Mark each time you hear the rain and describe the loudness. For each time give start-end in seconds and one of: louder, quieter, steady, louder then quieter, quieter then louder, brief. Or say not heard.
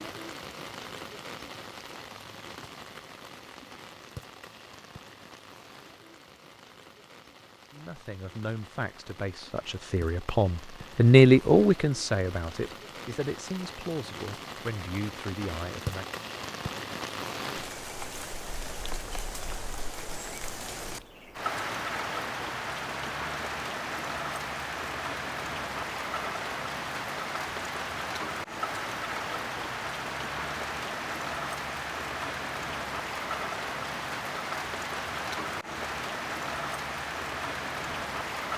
0.0-38.5 louder.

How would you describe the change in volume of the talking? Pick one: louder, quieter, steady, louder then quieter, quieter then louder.
louder then quieter.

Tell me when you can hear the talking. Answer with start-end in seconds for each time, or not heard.
7.7-16.1.